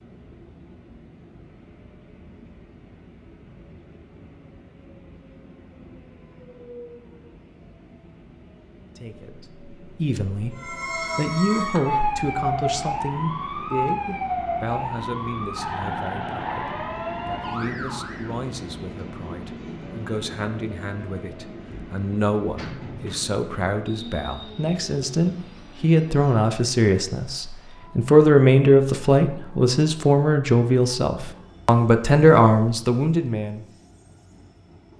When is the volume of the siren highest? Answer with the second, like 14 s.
12 s.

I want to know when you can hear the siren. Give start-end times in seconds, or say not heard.
10.6-18.4.